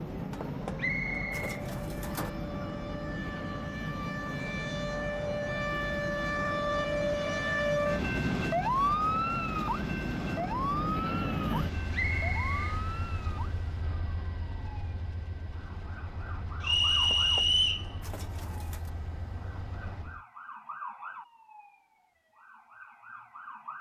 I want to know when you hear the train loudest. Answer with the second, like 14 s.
11 s.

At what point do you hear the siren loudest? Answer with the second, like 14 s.
9 s.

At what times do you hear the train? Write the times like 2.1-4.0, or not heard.
0.0-20.2.